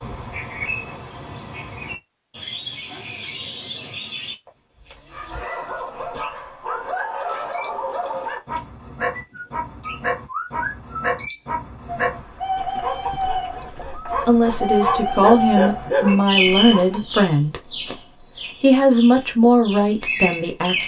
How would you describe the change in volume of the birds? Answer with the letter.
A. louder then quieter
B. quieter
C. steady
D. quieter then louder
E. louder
E.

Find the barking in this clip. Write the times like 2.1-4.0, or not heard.
4.8-17.2.